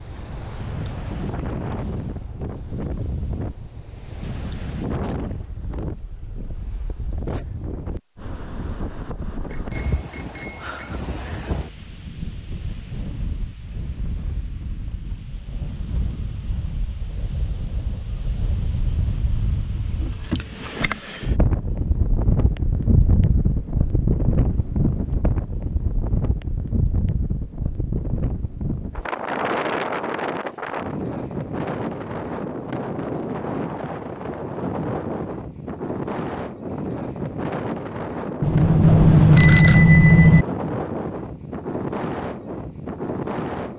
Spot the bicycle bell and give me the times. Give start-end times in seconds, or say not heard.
9.5-11.0, 38.4-40.5.